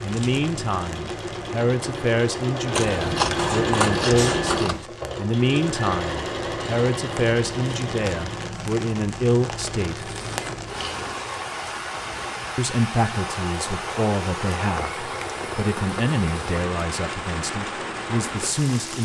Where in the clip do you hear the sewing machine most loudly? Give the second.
4 s.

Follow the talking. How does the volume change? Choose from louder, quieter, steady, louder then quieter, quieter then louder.
steady.